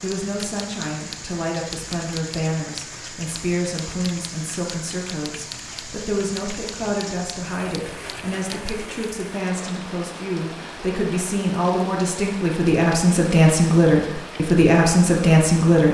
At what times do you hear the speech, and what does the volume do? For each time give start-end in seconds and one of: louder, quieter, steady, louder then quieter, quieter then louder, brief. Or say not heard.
0.0-15.9 louder.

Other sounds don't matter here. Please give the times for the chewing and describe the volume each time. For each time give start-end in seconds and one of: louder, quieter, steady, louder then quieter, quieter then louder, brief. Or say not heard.
not heard.